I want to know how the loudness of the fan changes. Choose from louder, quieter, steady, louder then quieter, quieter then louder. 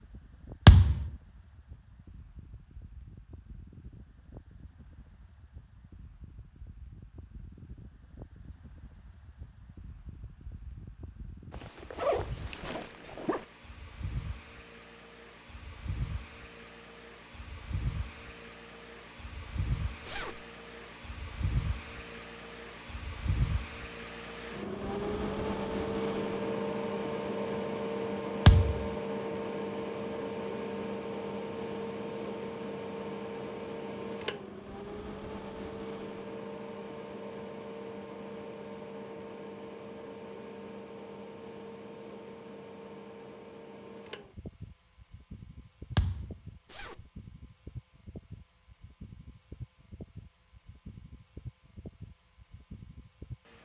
louder then quieter.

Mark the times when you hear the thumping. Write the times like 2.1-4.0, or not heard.
0.7-1.1, 28.4-28.9, 46.0-46.4.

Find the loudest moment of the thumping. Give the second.
1 s.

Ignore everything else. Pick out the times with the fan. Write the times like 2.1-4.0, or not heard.
0.0-53.6.